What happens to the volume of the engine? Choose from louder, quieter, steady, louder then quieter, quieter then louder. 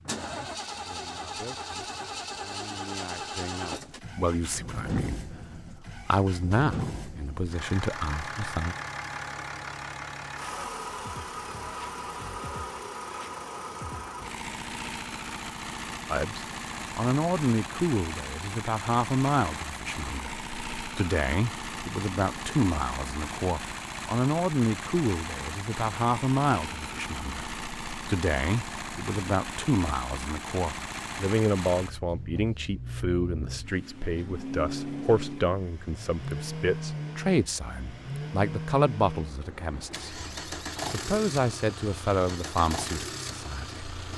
steady.